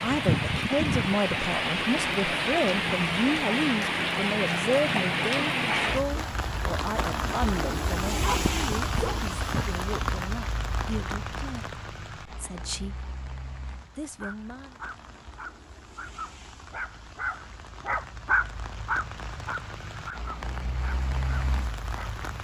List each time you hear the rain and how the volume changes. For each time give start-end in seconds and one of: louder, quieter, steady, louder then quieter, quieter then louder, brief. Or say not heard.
0.0-22.3 quieter then louder.